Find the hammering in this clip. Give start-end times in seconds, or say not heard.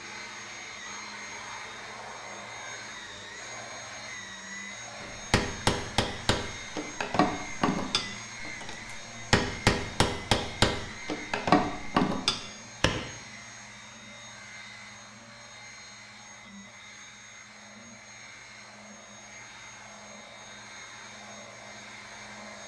5.0-13.1.